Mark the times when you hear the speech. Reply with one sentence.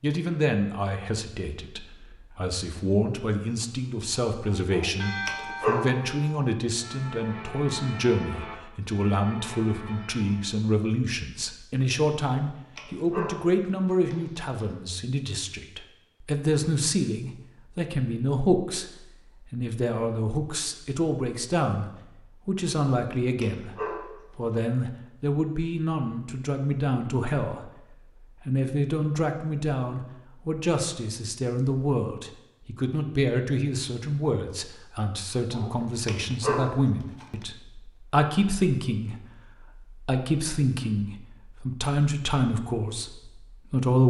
The speech can be heard from 0.0 to 27.8 s and from 28.4 to 44.0 s.